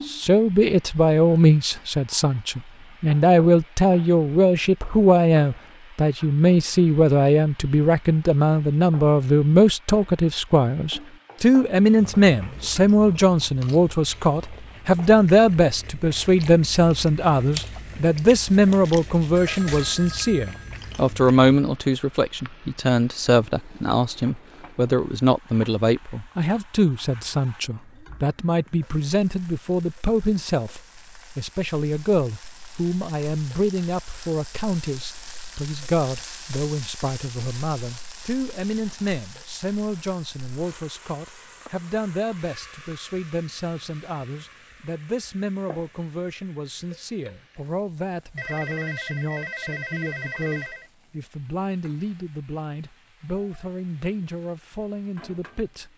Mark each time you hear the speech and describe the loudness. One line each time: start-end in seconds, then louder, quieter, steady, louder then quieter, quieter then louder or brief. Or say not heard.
0.1-55.9 quieter.